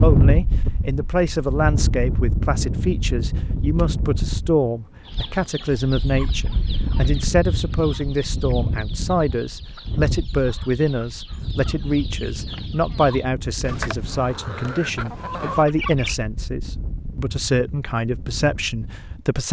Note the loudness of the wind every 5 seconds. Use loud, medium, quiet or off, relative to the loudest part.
loud, medium, medium, quiet.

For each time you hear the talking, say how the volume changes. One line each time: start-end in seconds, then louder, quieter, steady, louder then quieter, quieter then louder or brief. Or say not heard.
0.0-19.4 steady.